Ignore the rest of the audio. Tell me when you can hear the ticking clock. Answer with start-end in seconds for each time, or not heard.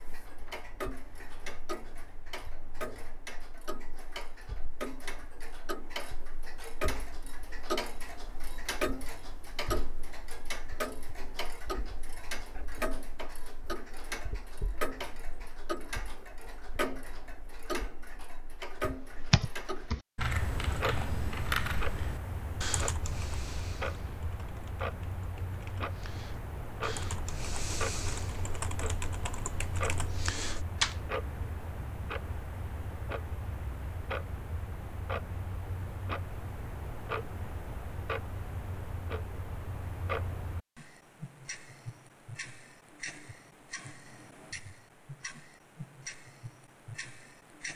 0.0-47.7.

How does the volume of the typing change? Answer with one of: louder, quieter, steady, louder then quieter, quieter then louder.
quieter then louder.